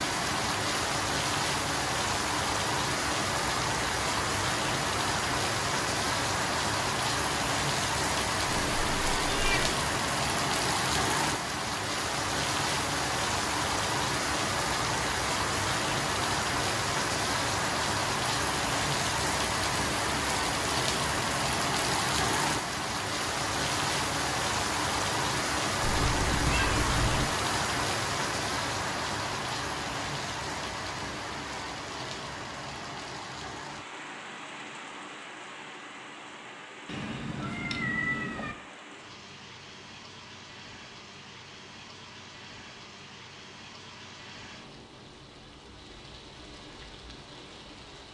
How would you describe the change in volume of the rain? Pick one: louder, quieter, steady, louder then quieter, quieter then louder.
quieter.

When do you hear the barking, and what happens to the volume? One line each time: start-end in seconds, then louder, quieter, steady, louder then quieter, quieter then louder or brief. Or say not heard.
not heard.